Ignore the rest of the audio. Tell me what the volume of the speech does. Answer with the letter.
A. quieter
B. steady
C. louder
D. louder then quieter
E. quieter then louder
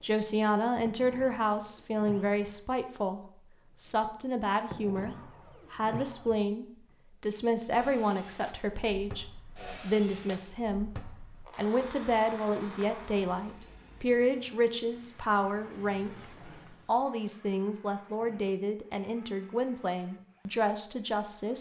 B.